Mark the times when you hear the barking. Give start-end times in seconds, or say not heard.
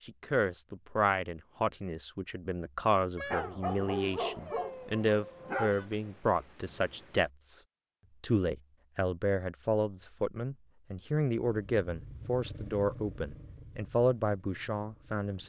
3.1-5.8.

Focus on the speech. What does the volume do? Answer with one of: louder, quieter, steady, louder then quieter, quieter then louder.
steady.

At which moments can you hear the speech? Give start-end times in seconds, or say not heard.
0.1-7.6, 8.2-15.4.